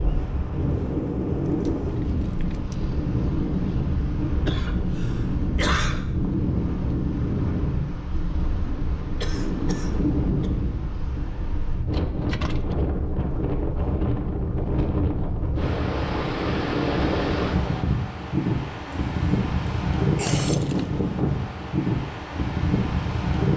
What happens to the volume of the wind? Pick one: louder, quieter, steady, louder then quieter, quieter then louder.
steady.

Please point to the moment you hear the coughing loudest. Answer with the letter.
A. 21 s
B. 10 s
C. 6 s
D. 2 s
C.